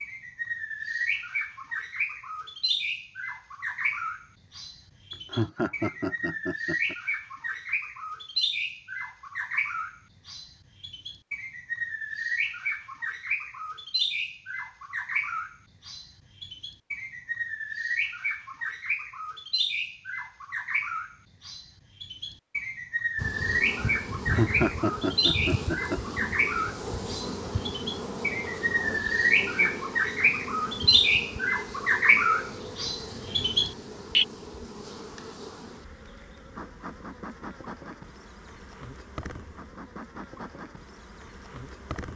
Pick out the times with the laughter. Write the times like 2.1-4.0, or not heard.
5.3-7.0, 24.3-26.0.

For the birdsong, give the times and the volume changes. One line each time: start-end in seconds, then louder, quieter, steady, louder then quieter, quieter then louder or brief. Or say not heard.
0.0-34.2 louder.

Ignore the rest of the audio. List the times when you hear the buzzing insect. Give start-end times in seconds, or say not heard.
23.1-42.1.